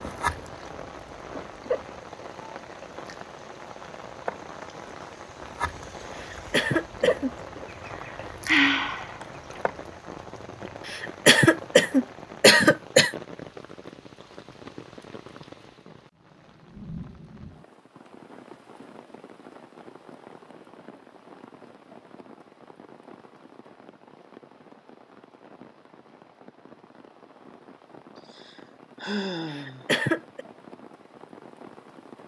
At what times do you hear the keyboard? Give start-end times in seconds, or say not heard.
not heard.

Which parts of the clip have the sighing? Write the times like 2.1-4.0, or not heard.
7.8-9.6, 28.2-29.9.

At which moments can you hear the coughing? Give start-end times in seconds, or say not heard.
6.2-7.3, 10.8-13.1, 29.5-30.4.